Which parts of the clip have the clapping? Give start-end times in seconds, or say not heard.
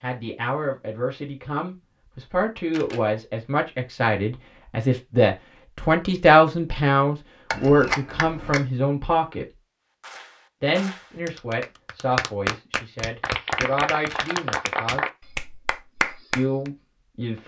10.0-16.7.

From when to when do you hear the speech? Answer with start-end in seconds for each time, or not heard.
0.0-9.4, 10.6-15.1, 16.4-17.4.